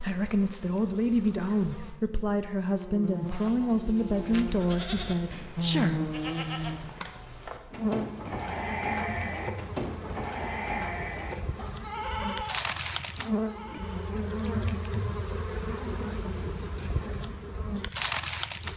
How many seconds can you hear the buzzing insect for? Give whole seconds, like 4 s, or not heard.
19 s.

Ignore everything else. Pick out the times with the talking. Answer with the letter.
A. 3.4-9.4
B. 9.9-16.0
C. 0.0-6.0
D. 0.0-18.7
C.